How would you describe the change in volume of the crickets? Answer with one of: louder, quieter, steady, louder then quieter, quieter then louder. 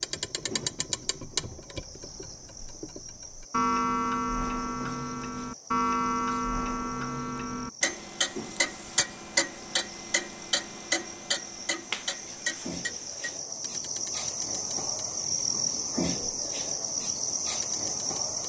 louder.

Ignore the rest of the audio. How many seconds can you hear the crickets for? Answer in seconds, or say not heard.
18 s.